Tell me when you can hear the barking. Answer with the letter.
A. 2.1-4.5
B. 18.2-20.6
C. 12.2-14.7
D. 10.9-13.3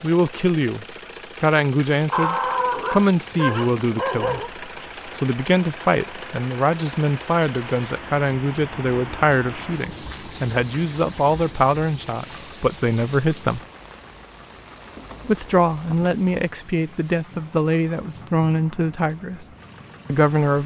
A.